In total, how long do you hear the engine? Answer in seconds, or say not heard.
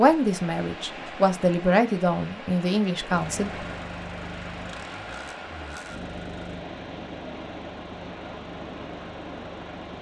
7 s.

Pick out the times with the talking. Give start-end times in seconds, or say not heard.
0.0-3.5.